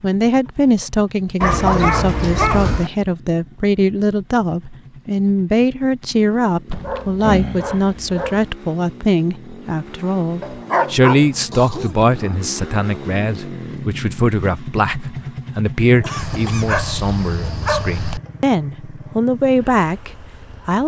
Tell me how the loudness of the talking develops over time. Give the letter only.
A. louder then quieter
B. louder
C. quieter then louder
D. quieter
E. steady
E.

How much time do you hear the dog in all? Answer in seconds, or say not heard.
7 s.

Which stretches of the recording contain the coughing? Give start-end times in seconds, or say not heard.
16.0-16.7.